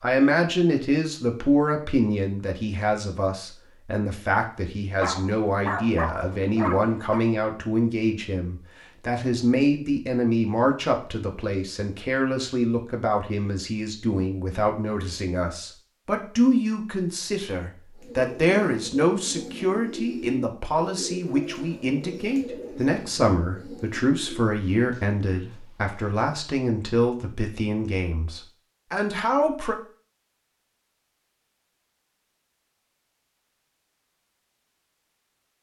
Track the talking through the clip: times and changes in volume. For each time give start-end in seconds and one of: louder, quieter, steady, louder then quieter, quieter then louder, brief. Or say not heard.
0.0-29.8 steady.